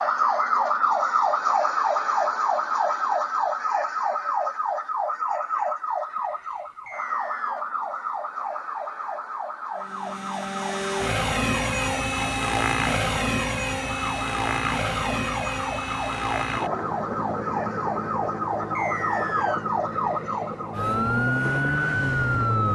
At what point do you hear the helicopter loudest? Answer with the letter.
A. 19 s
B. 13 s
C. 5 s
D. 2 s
B.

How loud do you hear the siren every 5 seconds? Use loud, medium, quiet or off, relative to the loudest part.
loud, medium, medium, medium, loud.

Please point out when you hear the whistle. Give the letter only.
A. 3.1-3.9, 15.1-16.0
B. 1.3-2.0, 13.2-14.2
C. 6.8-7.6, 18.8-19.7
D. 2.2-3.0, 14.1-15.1
C.